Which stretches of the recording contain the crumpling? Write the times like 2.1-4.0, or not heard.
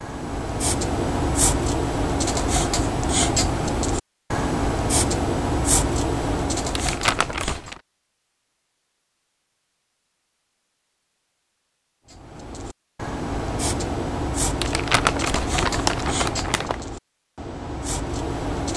6.8-7.8, 14.6-16.8.